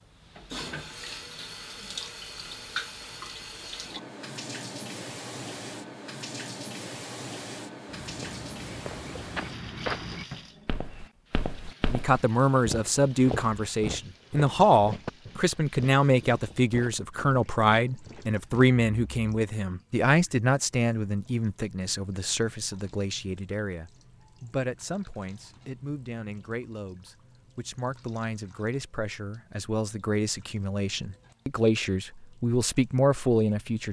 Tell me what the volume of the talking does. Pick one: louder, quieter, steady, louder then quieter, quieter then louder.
quieter then louder.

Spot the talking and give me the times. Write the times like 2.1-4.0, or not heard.
11.9-33.8.